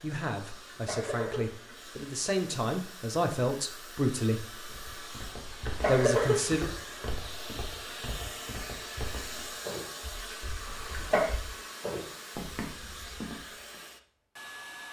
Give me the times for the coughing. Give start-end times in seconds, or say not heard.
0.6-1.8, 5.4-6.5, 10.7-11.3.